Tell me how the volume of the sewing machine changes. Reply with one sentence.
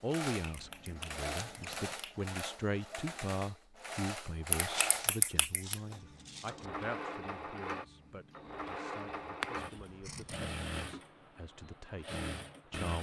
The volume of the sewing machine stays about the same.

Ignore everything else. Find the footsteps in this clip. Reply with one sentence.
The footsteps can't be heard in this clip.